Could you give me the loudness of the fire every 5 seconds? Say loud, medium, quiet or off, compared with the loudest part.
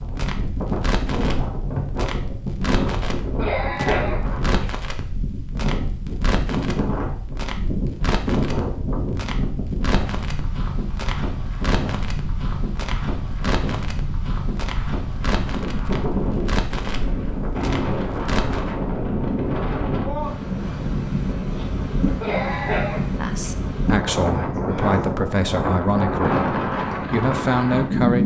loud, loud, loud, loud, off, off.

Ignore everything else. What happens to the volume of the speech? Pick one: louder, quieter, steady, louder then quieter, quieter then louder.
quieter then louder.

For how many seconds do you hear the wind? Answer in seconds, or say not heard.
28 s.